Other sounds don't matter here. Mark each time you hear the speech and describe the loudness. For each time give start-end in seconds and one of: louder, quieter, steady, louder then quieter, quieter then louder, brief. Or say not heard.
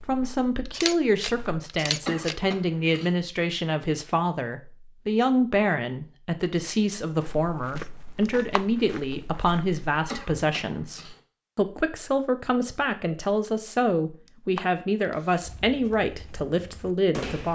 0.1-17.5 steady.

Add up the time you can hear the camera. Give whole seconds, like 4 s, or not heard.
3 s.